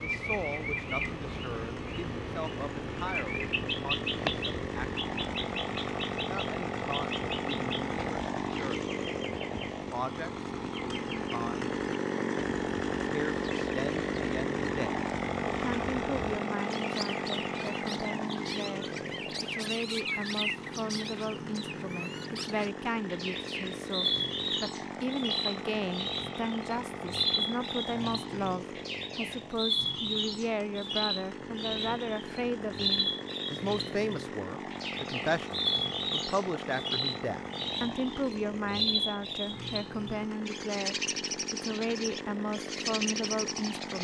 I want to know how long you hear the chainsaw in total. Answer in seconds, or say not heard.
44 s.